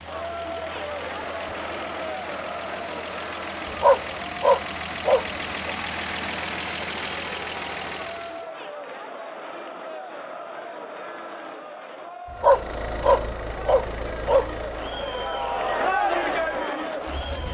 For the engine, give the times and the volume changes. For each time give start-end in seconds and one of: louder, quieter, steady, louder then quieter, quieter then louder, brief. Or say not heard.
0.0-8.5 louder
12.2-17.4 quieter.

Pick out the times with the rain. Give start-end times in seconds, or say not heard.
not heard.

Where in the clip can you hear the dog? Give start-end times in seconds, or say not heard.
3.8-5.8, 12.4-14.5.